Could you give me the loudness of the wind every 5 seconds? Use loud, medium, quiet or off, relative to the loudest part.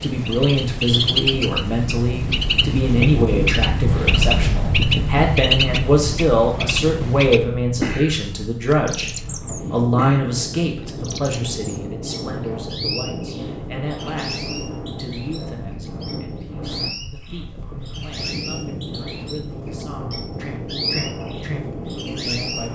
loud, medium, medium, medium, medium.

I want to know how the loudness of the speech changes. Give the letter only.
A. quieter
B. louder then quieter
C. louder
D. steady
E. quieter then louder
A.